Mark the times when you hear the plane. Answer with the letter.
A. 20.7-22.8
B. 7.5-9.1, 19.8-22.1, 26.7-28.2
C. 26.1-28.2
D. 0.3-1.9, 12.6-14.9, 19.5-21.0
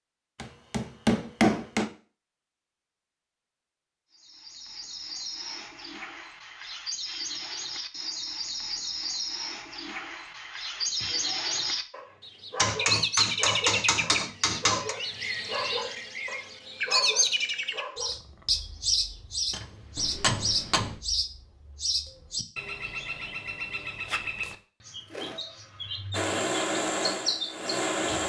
C.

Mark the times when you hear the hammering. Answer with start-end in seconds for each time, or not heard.
0.3-1.9, 12.6-14.9, 19.5-21.0.